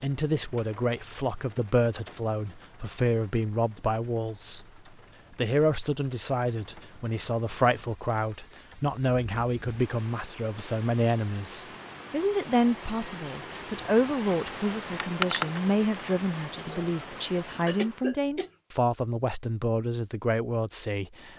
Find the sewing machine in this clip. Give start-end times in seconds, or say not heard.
not heard.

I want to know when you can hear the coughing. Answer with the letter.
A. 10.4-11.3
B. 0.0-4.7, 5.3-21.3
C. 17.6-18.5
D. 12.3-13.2
C.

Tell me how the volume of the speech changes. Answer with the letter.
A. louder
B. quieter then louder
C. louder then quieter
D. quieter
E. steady
E.